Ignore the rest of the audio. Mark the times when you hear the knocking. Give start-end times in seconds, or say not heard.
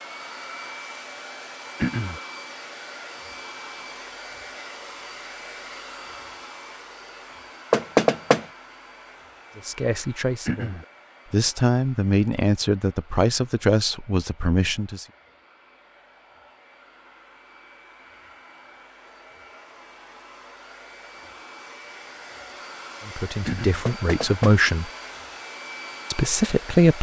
7.7-8.4, 23.9-24.6.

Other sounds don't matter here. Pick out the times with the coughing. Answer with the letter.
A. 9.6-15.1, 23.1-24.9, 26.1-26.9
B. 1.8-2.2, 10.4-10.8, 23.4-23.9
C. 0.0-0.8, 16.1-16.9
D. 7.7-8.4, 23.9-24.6
B.